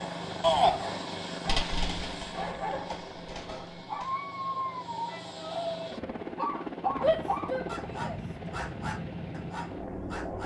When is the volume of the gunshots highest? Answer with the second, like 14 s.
2 s.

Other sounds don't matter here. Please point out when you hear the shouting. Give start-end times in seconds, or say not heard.
0.4-0.8, 7.0-8.2.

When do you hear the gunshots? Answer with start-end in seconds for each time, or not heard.
1.4-4.0.